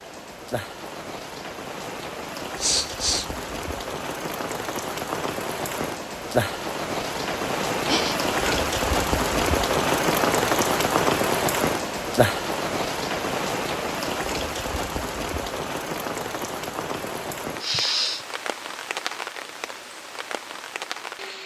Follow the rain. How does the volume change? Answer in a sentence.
The volume of the rain goes up, then down.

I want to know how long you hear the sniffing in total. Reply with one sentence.
The sniffing can be heard for 2 seconds in total.